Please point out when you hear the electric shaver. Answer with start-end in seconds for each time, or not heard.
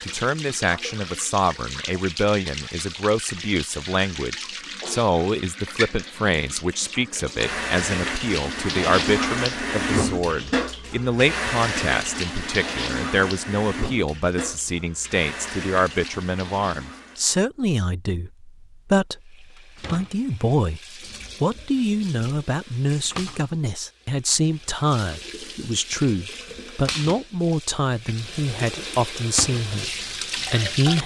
not heard.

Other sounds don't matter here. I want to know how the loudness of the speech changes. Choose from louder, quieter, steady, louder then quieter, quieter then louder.
steady.